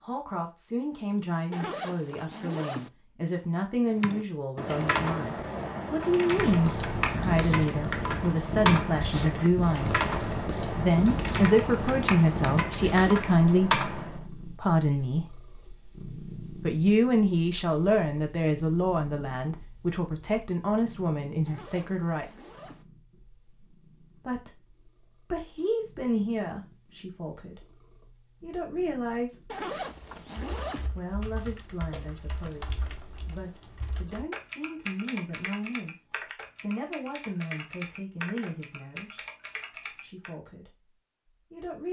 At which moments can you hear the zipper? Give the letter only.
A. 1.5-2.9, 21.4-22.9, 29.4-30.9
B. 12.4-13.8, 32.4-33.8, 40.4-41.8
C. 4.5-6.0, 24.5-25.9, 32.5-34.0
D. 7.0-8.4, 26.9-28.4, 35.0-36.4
A.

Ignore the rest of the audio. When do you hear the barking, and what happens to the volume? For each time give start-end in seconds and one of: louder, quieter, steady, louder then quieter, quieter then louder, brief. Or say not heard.
not heard.